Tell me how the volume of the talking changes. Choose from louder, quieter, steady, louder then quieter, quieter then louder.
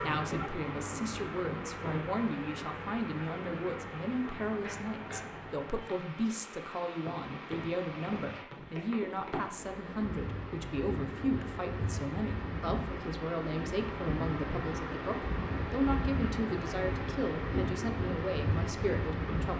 steady.